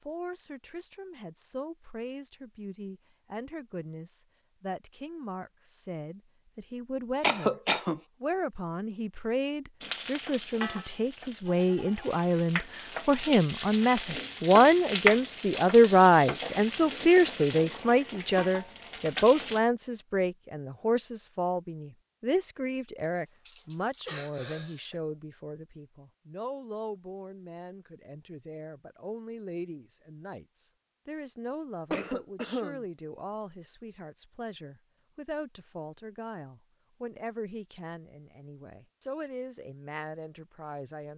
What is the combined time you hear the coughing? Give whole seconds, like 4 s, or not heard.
3 s.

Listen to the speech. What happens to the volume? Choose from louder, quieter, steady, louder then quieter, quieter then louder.
louder then quieter.